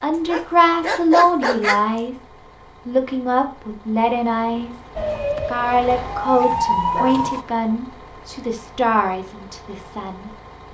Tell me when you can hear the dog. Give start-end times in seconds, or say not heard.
0.2-1.8, 6.3-7.2.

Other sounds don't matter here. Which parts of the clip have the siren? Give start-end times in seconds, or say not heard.
5.0-7.5.